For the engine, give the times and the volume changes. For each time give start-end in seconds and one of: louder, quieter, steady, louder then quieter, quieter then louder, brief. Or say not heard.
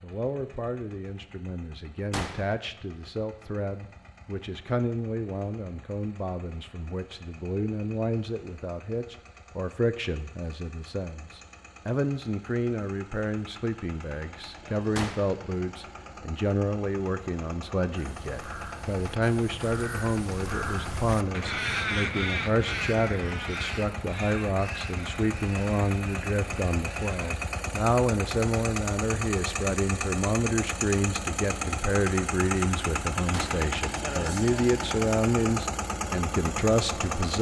0.0-37.3 louder.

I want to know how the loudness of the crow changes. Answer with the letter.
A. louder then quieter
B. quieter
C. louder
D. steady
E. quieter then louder
A.